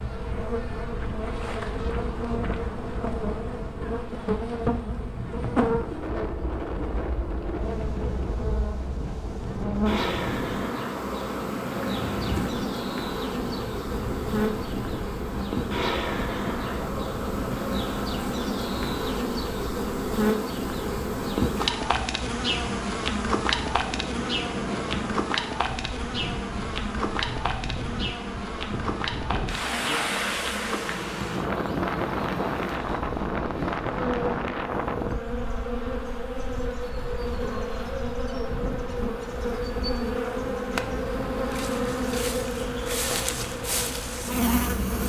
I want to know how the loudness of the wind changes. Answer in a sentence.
The loudness of the wind goes up, then down.